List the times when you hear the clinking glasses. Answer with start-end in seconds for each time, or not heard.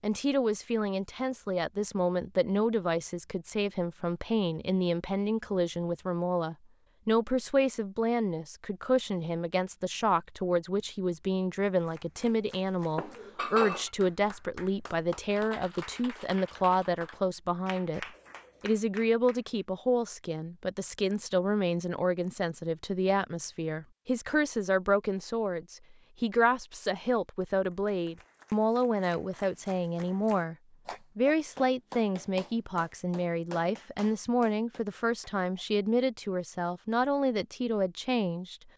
12.9-13.9.